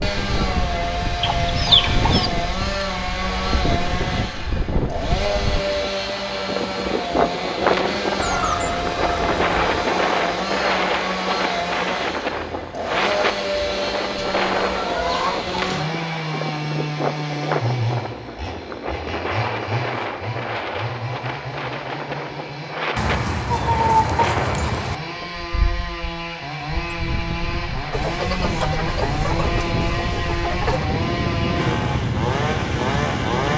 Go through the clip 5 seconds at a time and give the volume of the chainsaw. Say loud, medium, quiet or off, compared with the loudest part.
loud, loud, loud, loud, medium, loud, loud.